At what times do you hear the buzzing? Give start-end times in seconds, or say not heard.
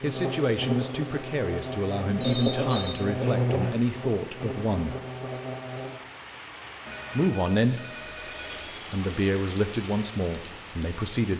0.0-6.0.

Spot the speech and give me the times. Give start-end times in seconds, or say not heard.
0.0-5.0, 7.2-8.0, 8.9-11.3.